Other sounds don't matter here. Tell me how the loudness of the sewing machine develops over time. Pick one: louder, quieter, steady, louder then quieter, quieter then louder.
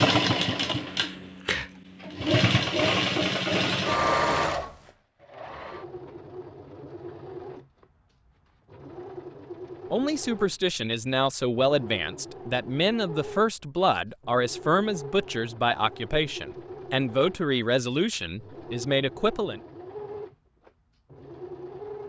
quieter.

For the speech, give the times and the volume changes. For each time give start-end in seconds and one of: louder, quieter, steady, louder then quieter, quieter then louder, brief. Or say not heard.
9.9-19.6 steady.